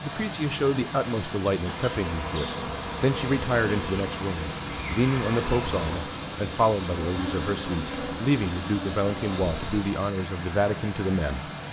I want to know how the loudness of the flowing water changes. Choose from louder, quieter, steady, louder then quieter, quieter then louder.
steady.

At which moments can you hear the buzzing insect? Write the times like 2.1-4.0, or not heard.
1.6-9.8.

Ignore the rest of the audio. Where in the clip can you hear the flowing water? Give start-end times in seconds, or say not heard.
0.0-11.6.